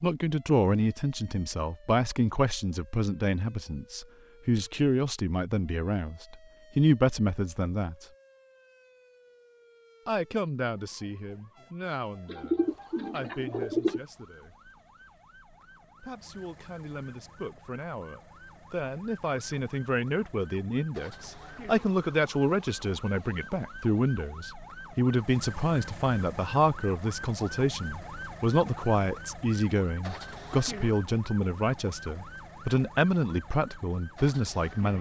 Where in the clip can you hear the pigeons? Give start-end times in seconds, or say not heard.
12.2-14.0.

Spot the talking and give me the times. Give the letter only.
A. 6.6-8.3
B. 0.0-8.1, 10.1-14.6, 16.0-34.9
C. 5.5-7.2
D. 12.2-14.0
B.